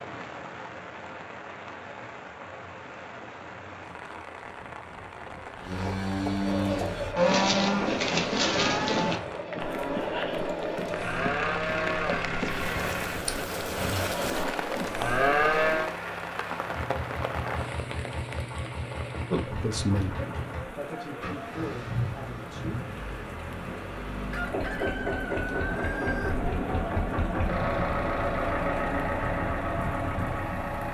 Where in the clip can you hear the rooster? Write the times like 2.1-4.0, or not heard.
24.3-26.3.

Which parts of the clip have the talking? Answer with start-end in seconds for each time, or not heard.
19.3-22.8.